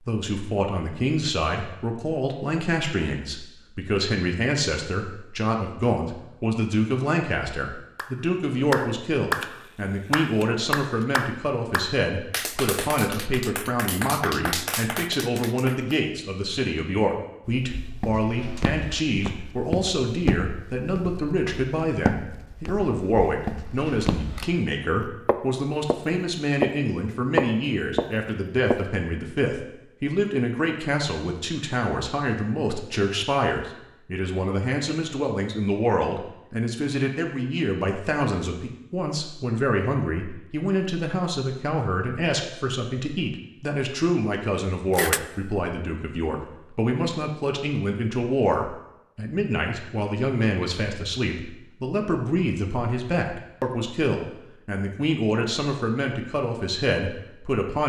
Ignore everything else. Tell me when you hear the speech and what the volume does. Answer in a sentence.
You can hear the speech from 0.1 to 57.8 s, at a steady volume.